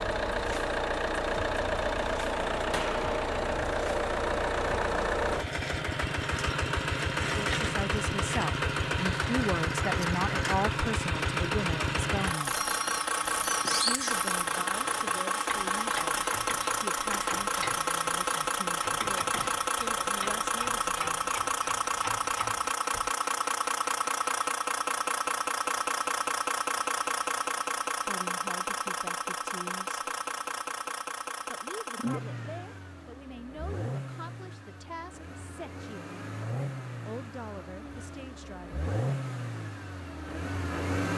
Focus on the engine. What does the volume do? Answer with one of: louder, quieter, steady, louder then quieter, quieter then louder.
quieter.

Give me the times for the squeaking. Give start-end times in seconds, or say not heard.
12.5-14.2.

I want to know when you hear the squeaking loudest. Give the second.
14 s.